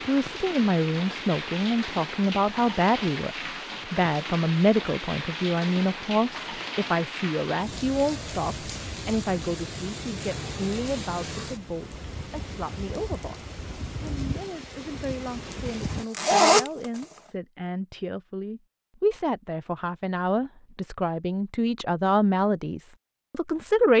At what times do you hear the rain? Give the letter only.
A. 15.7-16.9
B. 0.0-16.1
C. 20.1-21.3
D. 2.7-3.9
B.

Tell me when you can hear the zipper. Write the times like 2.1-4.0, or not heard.
15.7-16.9.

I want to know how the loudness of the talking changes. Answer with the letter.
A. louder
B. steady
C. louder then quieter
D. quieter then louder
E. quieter
D.